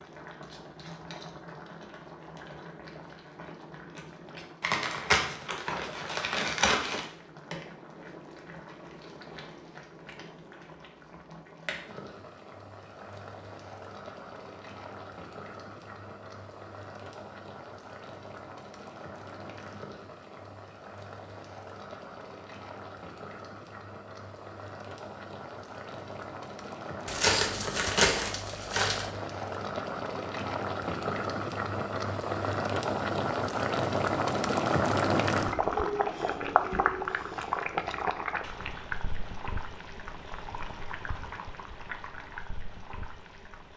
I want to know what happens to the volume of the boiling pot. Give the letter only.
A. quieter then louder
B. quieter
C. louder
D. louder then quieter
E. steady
C.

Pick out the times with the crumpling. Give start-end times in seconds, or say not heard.
4.6-7.0, 27.1-29.1.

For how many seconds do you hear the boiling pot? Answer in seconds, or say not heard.
44 s.